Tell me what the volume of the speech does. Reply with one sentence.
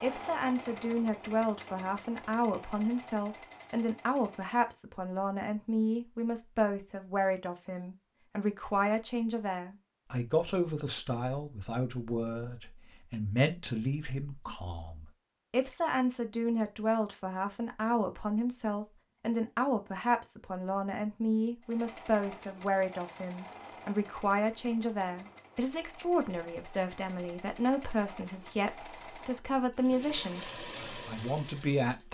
The loudness of the speech stays about the same.